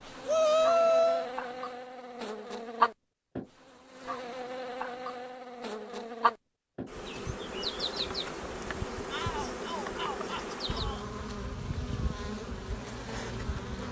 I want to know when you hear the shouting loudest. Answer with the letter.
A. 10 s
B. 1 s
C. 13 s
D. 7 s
B.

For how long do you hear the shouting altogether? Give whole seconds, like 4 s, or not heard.
3 s.